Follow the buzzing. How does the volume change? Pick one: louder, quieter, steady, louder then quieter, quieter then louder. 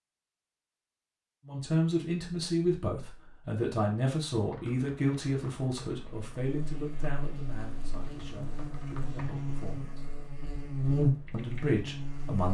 louder.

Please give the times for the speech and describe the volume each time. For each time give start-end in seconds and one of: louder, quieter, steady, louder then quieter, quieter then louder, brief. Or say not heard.
1.4-10.1 quieter
11.3-12.4 brief.